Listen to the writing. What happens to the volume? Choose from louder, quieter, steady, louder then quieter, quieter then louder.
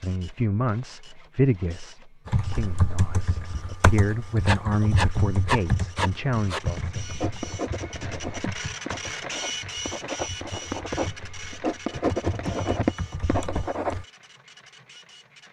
quieter then louder.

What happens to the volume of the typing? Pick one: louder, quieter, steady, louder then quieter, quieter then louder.
quieter then louder.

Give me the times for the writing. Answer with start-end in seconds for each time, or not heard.
4.5-14.0.